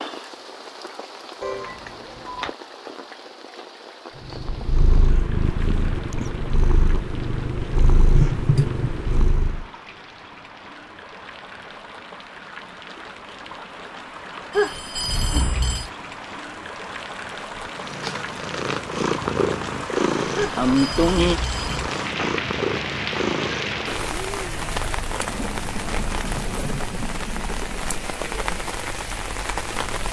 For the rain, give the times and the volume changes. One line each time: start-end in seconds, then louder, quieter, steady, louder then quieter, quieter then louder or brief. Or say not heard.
0.0-30.0 louder.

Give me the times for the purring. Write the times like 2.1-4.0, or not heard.
4.2-9.7, 17.6-27.7.